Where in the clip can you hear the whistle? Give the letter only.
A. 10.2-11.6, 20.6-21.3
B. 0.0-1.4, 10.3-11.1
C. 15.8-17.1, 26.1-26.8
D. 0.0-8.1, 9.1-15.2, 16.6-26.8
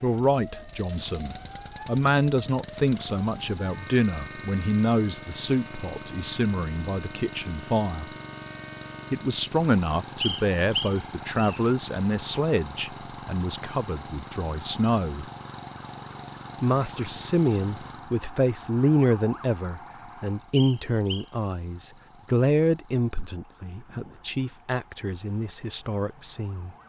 A.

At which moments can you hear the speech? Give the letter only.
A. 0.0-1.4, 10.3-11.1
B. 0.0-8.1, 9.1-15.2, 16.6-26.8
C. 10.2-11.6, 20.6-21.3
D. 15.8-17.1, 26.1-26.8
B.